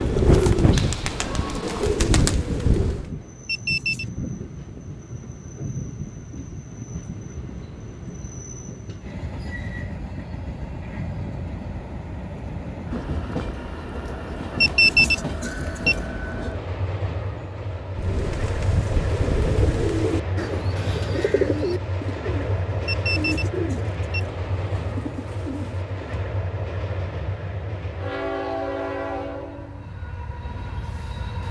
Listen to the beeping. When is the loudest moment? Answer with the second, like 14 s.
15 s.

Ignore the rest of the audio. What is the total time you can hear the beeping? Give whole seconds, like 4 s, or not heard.
3 s.